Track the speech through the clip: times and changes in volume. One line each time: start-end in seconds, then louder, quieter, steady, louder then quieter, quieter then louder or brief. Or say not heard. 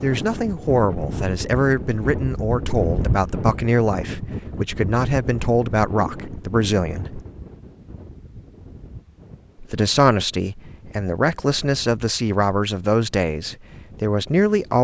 0.0-7.2 steady
9.6-14.8 steady.